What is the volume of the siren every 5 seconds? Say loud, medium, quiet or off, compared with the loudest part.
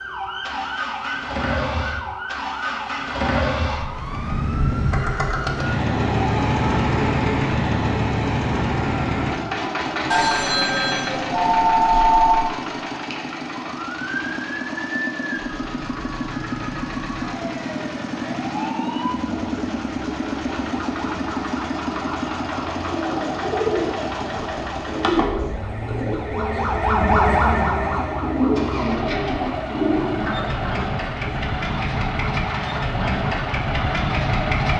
medium, medium, medium, medium, medium, loud, medium.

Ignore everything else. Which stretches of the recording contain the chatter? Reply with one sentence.
You can't hear the chatter here.